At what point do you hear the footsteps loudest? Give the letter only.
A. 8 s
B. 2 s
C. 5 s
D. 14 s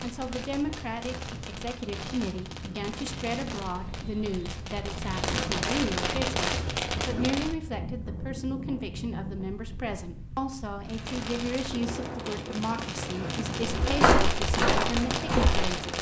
D.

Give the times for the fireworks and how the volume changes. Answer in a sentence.
The fireworks can be heard from 0.0 to 7.5 s, getting louder; and from 10.8 to 15.9 s, getting louder.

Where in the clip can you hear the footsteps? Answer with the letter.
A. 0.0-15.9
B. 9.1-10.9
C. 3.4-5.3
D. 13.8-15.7
D.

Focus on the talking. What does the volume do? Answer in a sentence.
The volume of the talking stays about the same.